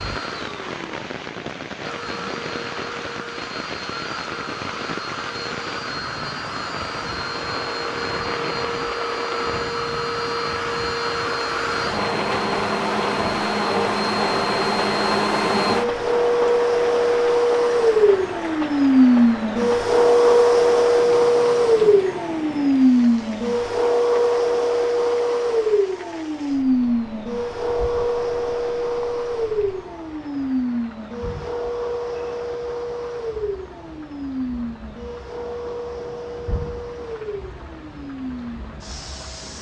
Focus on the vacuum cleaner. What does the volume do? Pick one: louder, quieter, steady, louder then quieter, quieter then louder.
louder then quieter.